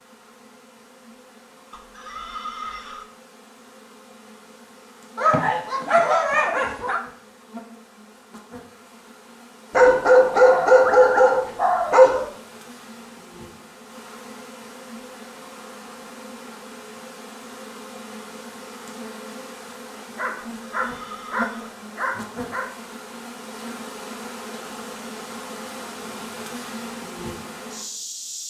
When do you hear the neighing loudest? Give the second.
3 s.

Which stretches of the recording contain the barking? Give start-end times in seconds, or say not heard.
5.2-7.0, 9.7-12.3, 19.9-22.6.